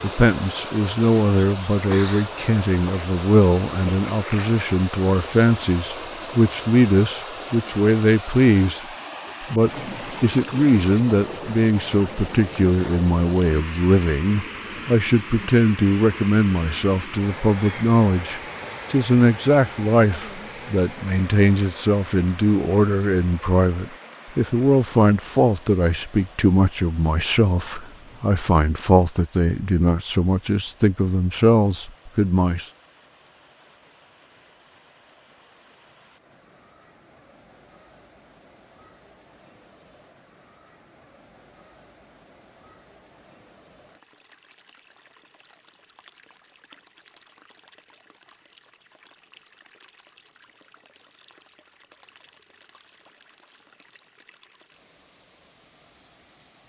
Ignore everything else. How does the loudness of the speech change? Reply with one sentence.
The loudness of the speech stays about the same.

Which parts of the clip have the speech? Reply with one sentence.
You can hear the speech from 0.0 to 8.8 s and from 9.5 to 32.6 s.